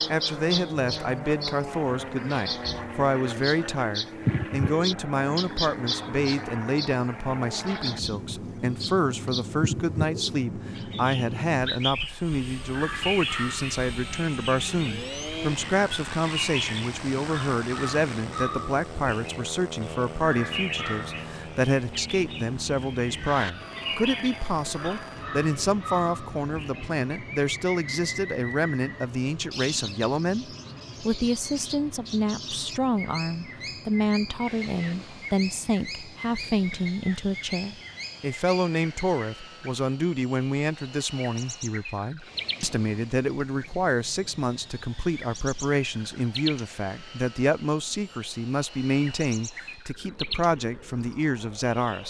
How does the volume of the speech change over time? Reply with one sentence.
The volume of the speech stays about the same.